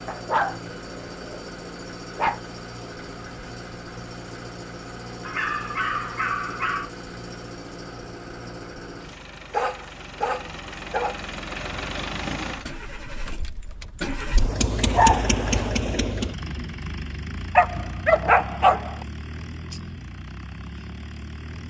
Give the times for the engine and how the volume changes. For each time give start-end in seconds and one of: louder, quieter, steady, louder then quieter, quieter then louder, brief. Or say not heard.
0.0-21.6 louder then quieter.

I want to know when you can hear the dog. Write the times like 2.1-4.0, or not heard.
0.1-2.4, 5.2-6.9, 9.5-11.2, 14.9-15.7, 17.6-19.1.